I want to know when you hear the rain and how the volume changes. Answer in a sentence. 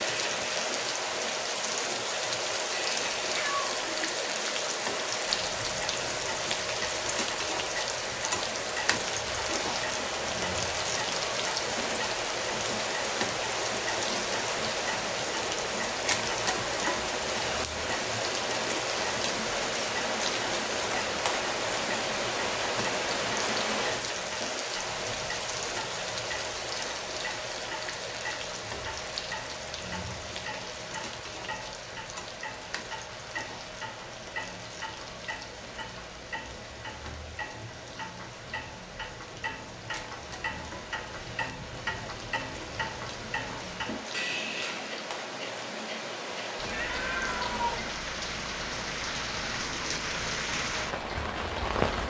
The rain can be heard from 0.0 to 52.0 s, getting quieter then louder.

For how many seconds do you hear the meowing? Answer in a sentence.
You can hear the meowing for 2 seconds altogether.